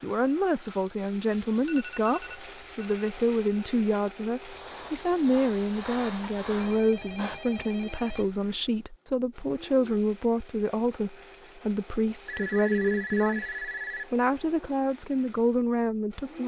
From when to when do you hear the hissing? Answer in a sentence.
The hissing can be heard from 4.3 to 7.4 s.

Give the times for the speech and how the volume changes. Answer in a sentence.
You can hear the speech from 0.0 to 16.4 s, at a steady volume.